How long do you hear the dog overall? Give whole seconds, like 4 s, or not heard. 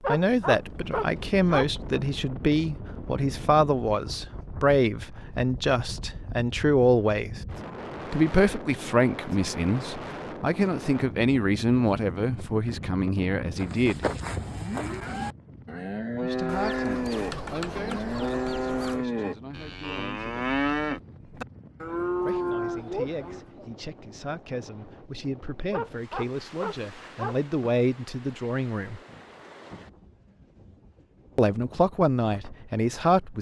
4 s.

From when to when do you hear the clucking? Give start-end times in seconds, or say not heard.
16.4-19.1.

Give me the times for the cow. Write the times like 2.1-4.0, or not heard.
13.6-23.6.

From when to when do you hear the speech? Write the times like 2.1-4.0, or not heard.
0.1-7.4, 8.1-14.1, 16.2-20.4, 22.2-29.0, 31.4-33.3.